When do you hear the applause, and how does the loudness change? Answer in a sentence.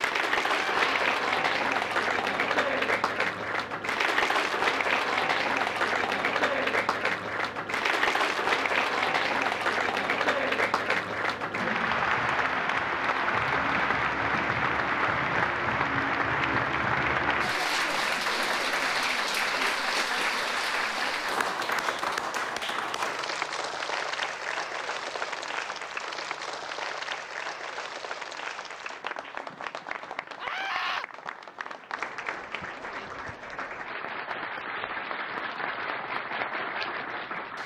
The applause can be heard from 0.0 to 37.6 s, getting quieter.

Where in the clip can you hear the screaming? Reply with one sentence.
The screaming can be heard from 0.5 to 1.1 s and from 30.4 to 31.1 s.